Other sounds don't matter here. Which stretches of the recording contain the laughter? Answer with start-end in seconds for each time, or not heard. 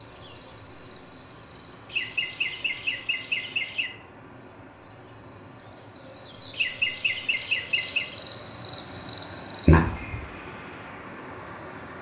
1.9-3.9, 6.5-8.1.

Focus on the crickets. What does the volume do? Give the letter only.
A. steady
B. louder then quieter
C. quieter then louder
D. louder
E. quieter
C.